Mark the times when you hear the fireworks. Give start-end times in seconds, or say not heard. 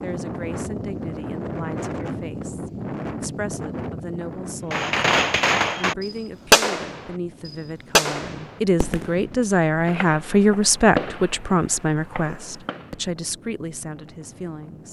4.7-12.9.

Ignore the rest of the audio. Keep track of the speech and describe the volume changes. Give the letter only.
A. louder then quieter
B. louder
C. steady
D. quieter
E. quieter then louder
A.